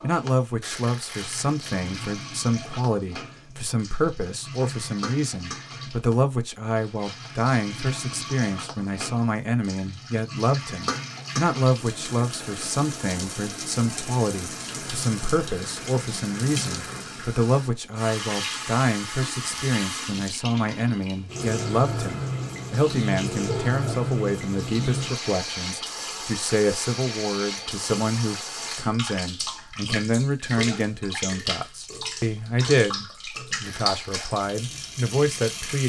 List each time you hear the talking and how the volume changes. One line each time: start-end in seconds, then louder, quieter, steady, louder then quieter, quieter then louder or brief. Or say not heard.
0.0-35.8 steady.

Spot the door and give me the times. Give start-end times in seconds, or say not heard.
23.4-24.1.